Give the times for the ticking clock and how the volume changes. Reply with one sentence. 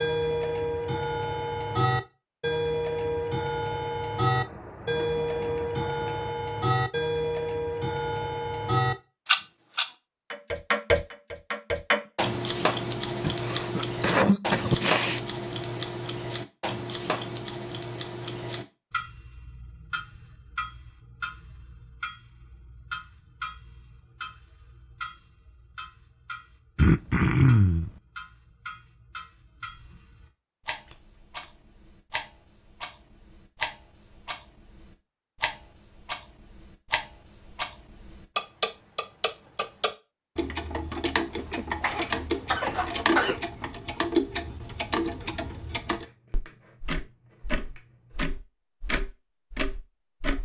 You can hear the ticking clock from 0.0 to 50.4 s, getting quieter then louder.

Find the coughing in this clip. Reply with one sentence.
The coughing can be heard from 13.2 to 15.2 s, from 26.8 to 27.9 s and from 41.4 to 43.4 s.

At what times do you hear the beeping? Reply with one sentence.
You can't hear the beeping here.